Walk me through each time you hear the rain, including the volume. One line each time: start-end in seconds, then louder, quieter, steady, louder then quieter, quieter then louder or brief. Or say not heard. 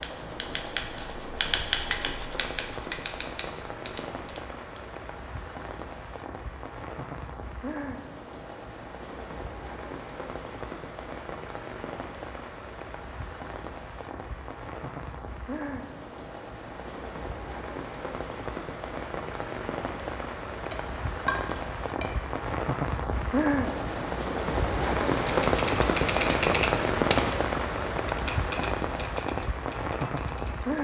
0.0-30.8 louder.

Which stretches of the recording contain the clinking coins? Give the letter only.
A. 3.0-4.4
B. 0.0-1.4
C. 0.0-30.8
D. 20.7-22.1
D.